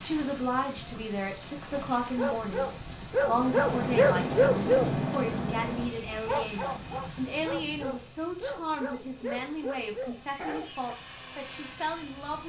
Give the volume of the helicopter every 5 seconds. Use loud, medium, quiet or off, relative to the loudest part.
loud, medium, quiet.